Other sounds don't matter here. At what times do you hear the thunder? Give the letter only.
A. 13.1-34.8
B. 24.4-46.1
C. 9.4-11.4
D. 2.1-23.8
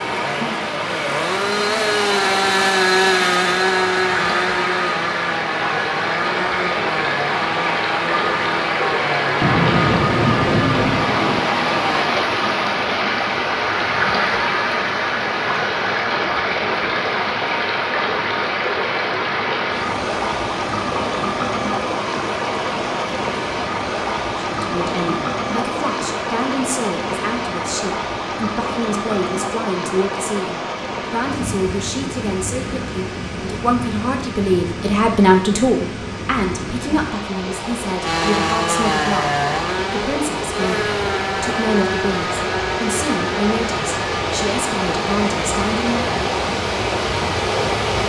C.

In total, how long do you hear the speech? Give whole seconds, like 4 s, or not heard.
22 s.